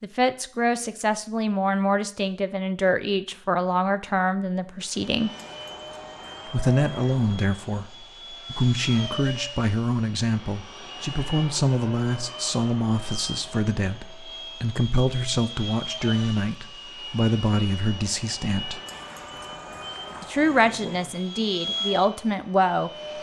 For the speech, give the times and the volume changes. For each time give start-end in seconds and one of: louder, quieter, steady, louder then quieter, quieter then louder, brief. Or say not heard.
0.0-5.3 steady
6.5-18.8 steady
20.2-22.9 brief.